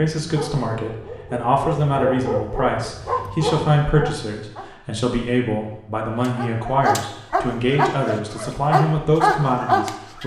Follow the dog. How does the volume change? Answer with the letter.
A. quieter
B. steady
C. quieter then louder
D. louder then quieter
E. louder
E.